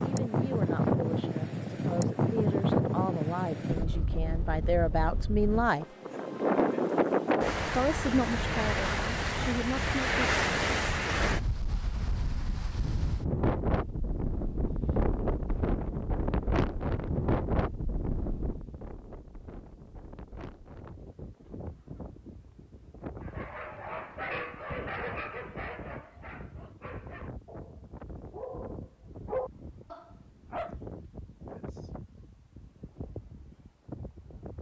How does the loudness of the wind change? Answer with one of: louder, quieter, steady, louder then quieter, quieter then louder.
quieter.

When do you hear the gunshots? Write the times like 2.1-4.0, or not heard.
not heard.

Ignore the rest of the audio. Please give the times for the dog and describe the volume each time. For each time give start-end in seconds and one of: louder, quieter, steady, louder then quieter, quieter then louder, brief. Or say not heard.
23.2-30.8 quieter then louder.